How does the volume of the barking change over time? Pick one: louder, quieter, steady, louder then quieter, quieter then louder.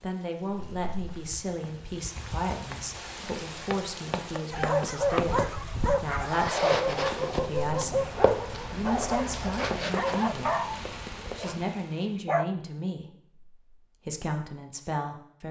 quieter.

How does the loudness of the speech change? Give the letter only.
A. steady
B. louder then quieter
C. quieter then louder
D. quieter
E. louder
A.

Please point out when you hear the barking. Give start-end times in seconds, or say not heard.
4.5-12.4.